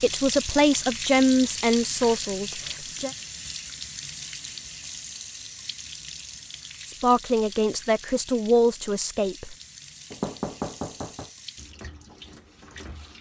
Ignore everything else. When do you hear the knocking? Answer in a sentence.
You can hear the knocking from 10.1 to 11.3 s.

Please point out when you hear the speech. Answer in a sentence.
The speech can be heard from 0.0 to 3.1 s and from 6.8 to 9.6 s.